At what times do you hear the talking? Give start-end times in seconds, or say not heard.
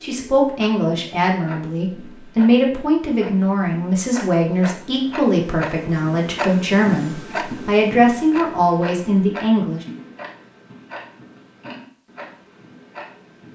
0.0-9.8.